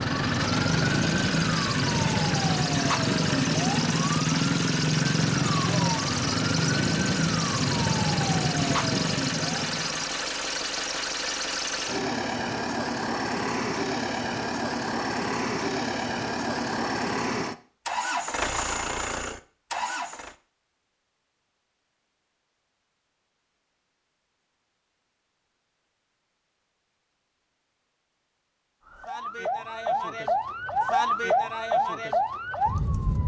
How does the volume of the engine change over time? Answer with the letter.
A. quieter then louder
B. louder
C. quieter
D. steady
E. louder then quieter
D.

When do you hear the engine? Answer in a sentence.
You can hear the engine from 0.0 to 20.4 s.